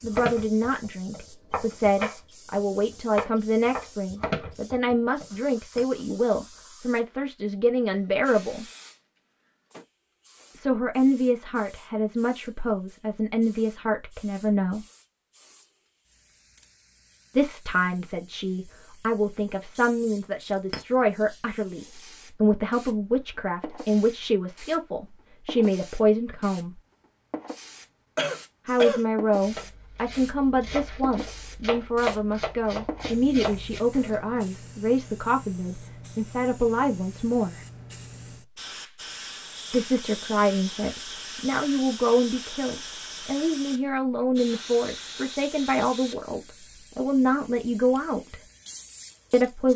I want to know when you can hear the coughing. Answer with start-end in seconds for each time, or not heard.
28.1-29.0.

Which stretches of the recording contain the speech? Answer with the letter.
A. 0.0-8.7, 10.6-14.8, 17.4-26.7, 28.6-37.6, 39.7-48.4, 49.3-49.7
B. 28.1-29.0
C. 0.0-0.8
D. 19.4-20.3
A.